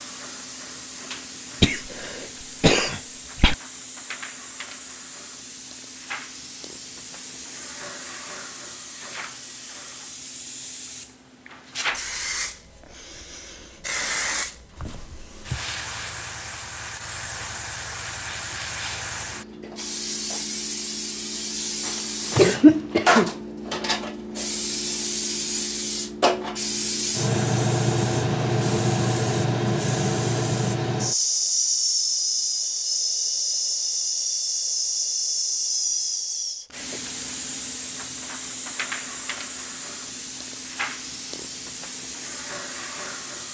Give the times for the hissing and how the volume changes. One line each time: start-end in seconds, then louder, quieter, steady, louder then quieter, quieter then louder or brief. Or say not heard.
0.0-43.5 louder then quieter.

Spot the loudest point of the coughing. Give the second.
23 s.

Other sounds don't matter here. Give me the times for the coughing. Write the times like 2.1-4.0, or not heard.
1.6-3.5, 21.9-23.3.